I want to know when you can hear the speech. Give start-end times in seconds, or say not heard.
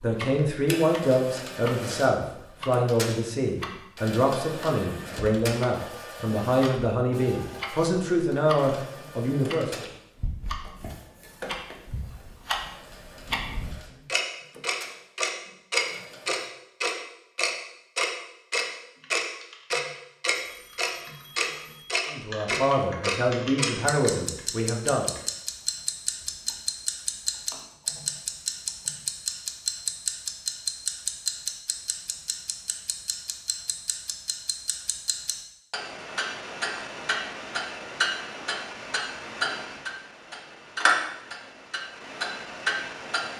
0.0-9.8, 22.1-25.1.